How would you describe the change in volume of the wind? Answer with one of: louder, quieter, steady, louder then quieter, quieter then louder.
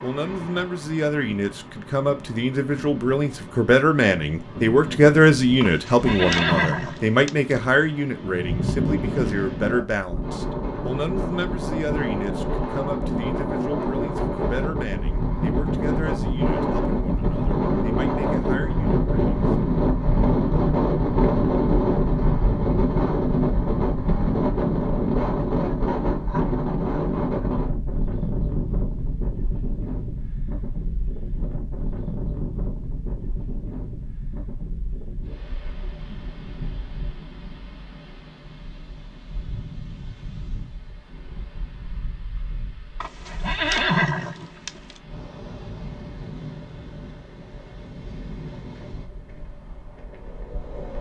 louder then quieter.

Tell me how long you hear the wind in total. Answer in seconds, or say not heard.
51 s.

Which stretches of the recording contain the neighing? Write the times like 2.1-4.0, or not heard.
5.6-7.4, 43.0-45.0.